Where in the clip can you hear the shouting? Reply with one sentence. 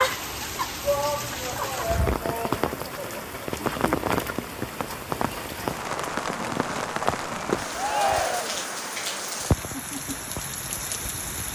The shouting can be heard from 0.8 to 3.2 s and from 7.8 to 8.7 s.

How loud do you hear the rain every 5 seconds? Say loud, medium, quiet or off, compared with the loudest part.
loud, loud, medium.